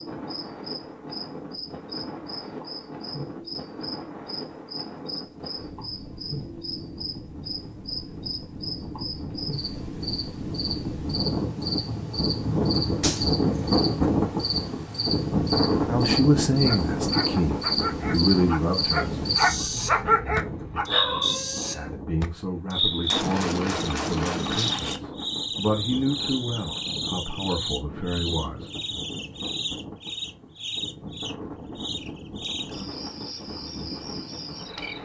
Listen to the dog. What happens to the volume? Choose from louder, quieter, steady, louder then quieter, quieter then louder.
louder then quieter.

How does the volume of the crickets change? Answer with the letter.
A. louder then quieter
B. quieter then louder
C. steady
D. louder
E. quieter
A.